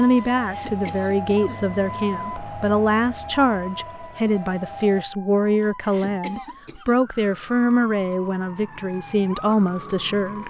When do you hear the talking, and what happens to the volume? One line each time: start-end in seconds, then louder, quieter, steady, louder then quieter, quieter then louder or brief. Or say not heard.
0.0-10.4 steady.